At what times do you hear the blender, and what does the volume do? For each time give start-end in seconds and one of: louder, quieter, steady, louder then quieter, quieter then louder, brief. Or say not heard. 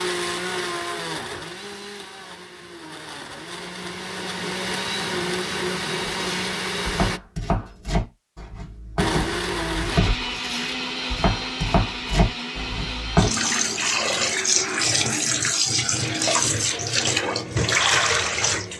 0.0-7.2 quieter then louder
8.9-18.7 quieter.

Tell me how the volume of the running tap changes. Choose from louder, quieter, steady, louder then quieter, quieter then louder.
steady.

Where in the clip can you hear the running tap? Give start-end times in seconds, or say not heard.
13.2-18.7.